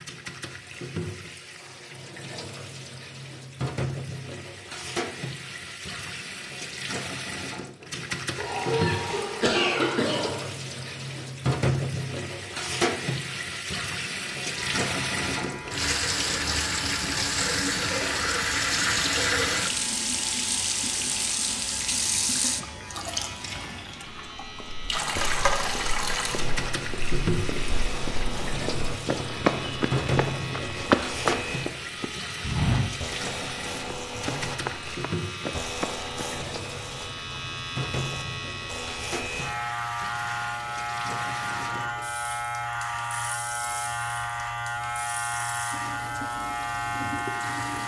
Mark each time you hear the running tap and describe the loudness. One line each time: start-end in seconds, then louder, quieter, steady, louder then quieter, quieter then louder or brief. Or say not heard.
0.0-47.8 louder then quieter.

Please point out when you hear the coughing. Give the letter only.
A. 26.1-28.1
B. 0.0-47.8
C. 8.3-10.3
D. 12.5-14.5
C.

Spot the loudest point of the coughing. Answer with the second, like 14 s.
10 s.